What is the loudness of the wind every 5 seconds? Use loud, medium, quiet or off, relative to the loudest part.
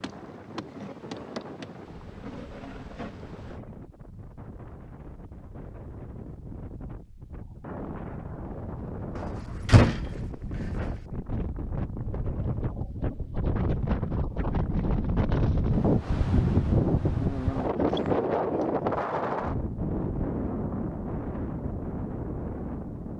quiet, quiet, medium, loud, medium.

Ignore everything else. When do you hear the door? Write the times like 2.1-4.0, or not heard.
9.2-11.0.